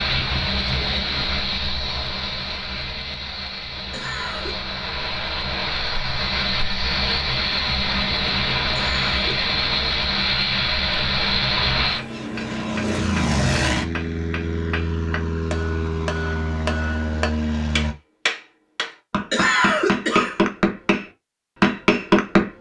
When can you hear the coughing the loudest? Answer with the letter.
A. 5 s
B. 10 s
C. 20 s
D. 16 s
C.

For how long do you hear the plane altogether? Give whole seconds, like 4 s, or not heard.
18 s.